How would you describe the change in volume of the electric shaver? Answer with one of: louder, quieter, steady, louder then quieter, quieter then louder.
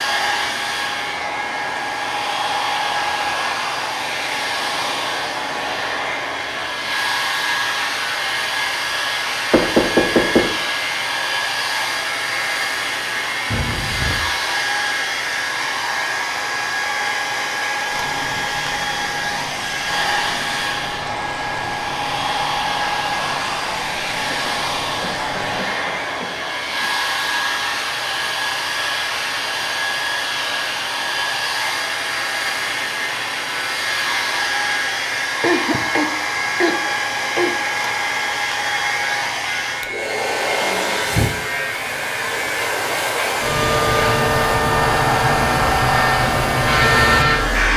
louder.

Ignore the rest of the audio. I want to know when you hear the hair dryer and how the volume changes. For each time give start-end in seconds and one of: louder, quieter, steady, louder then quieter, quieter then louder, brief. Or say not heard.
0.0-47.7 steady.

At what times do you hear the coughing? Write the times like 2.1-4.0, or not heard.
13.5-14.2, 24.3-26.9, 35.4-37.5.